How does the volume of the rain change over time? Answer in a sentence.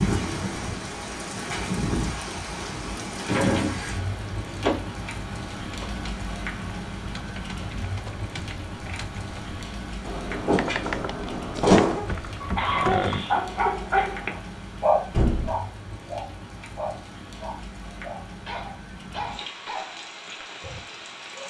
The volume of the rain goes down.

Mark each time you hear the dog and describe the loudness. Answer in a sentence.
The dog can be heard from 12.4 to 21.4 s, getting quieter.